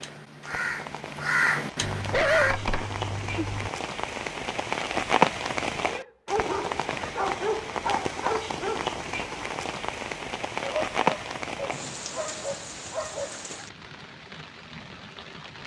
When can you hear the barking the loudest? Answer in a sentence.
The loudest moment of the barking is at 2 seconds.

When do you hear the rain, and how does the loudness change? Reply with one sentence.
The rain can be heard from 0.0 to 15.6 s, getting louder then quieter.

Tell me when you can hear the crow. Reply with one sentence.
You can hear the crow from 0.0 to 2.5 s.